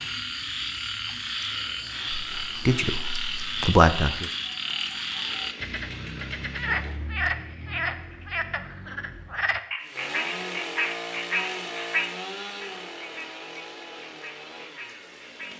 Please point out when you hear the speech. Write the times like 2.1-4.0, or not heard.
2.1-4.3.